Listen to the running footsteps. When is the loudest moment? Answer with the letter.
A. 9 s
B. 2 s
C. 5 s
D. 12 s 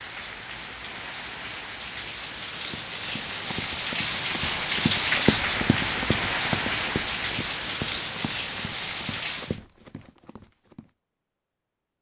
C.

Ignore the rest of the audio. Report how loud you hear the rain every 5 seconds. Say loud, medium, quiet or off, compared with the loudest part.
loud, loud, off.